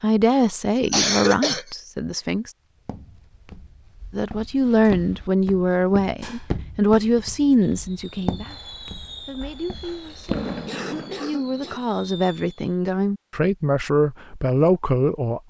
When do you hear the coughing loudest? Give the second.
1 s.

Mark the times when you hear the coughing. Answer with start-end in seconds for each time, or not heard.
0.9-1.6, 9.8-11.8.